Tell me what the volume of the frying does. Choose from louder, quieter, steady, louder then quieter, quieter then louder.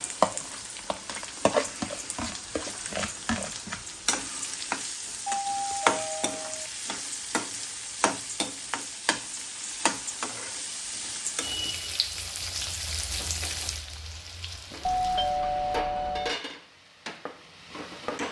quieter.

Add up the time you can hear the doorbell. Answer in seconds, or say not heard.
3 s.